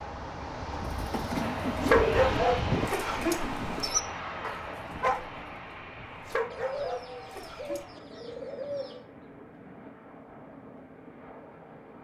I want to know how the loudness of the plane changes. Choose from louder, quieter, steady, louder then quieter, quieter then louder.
quieter.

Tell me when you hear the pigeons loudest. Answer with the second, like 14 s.
2 s.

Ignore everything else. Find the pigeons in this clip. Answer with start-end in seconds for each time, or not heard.
0.8-2.4, 6.5-9.1.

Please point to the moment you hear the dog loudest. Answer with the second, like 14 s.
2 s.